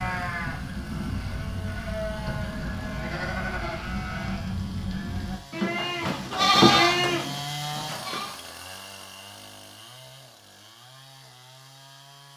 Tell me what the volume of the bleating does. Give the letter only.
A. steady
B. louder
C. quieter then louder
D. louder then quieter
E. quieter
B.